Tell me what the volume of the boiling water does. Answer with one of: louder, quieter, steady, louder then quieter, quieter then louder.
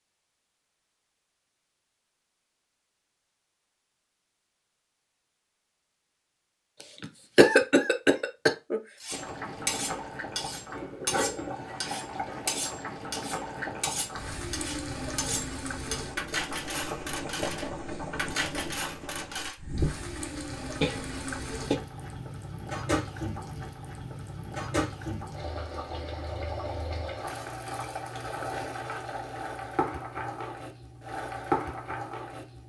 steady.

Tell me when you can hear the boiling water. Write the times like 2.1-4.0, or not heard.
9.1-32.6.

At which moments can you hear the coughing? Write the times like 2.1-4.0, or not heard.
7.0-8.8, 20.8-21.8.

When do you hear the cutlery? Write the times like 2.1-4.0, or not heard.
8.9-19.6.